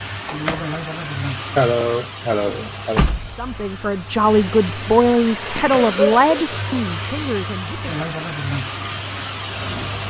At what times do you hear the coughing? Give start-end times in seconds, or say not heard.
1.6-3.0, 5.7-6.5.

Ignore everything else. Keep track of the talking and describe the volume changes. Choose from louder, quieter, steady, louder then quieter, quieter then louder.
quieter.